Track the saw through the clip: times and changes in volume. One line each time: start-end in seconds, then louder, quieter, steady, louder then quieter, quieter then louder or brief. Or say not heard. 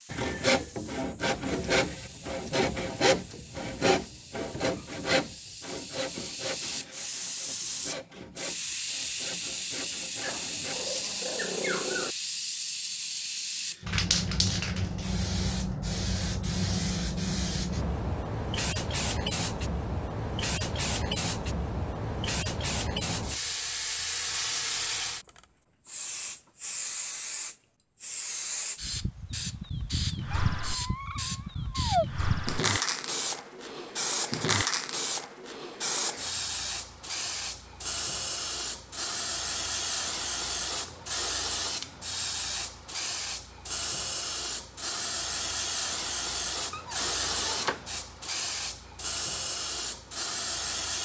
0.1-10.9 quieter.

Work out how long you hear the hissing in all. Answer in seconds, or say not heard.
51 s.